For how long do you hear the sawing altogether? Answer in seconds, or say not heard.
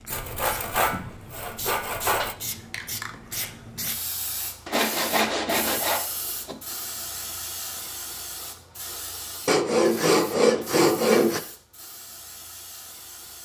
6 s.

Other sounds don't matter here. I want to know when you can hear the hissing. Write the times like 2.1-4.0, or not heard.
0.0-13.4.